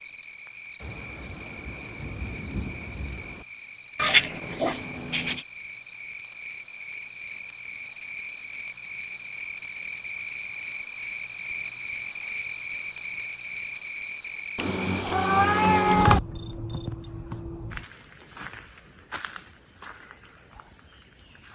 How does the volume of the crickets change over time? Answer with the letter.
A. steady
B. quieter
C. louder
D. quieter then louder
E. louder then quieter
E.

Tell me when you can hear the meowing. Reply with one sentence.
The meowing can be heard from 4.0 to 5.5 s and from 14.6 to 16.2 s.